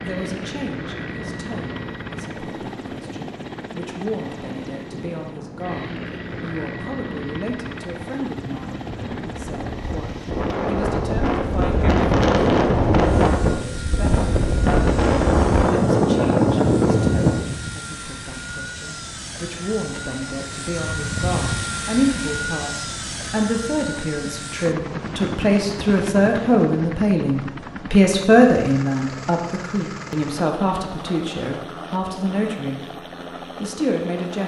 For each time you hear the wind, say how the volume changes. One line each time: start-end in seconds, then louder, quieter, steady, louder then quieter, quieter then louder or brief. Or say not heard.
0.1-17.4 louder.